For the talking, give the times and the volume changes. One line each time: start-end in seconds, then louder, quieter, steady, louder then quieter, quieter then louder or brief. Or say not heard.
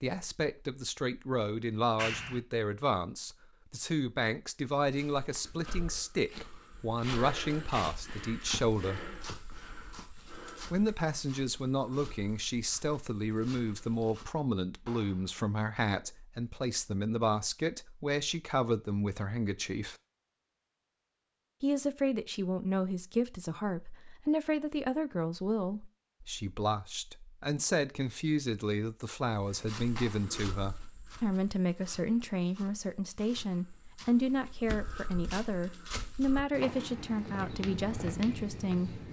0.0-9.1 steady
10.7-19.9 steady
21.6-39.0 steady.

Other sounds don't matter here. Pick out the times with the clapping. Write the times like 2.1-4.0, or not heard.
1.9-2.4, 14.8-15.3, 29.9-30.4.